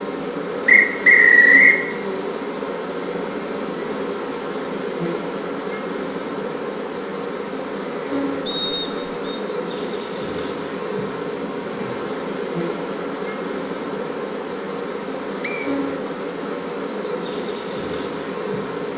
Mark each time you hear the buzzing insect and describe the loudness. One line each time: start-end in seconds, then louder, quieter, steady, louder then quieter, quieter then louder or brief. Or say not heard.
0.0-18.9 steady.